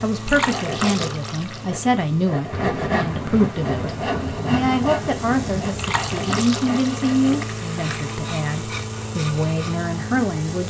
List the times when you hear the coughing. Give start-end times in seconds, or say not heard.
not heard.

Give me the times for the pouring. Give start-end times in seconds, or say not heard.
0.2-1.6, 5.8-8.0.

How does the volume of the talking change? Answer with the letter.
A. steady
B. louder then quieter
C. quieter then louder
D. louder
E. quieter
A.